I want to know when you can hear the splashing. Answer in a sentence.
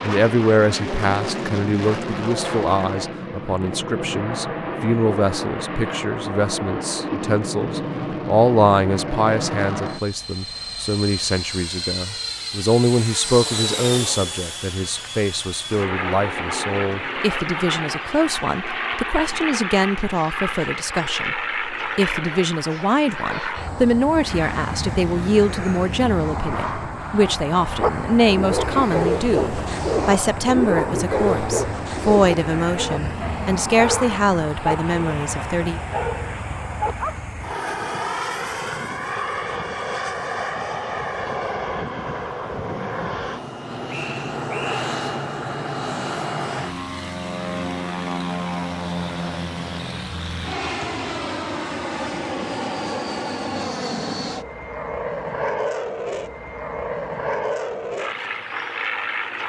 You can't hear the splashing here.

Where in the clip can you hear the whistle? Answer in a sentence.
You can hear the whistle from 43.9 to 44.9 s.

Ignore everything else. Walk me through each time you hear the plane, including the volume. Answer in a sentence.
You can hear the plane from 0.0 to 59.4 s, at a steady volume.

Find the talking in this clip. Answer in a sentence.
The talking can be heard from 0.0 to 35.8 s.